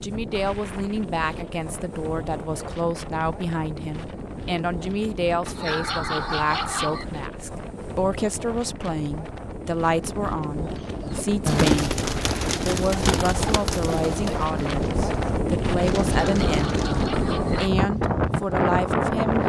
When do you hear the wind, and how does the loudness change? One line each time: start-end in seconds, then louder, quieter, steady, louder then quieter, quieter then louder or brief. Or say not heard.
0.0-19.4 louder.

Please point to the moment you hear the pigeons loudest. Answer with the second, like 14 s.
12 s.